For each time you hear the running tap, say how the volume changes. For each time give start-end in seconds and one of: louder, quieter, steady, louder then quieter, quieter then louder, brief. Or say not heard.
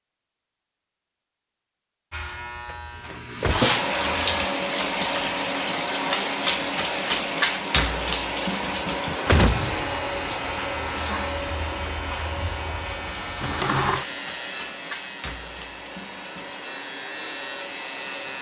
3.0-18.3 quieter.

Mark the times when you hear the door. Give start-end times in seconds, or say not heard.
3.1-3.6, 8.8-9.8, 13.4-14.1.